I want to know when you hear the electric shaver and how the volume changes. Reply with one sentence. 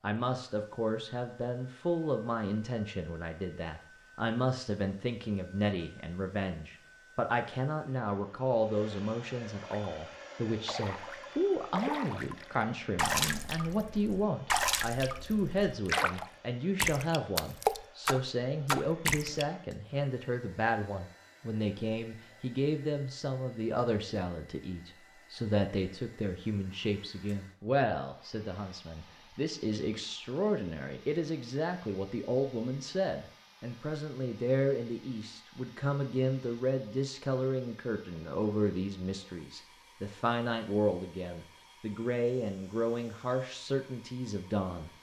You can't hear the electric shaver here.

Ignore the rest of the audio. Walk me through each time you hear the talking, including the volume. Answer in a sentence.
You can hear the talking from 0.0 to 44.9 s, at a steady volume.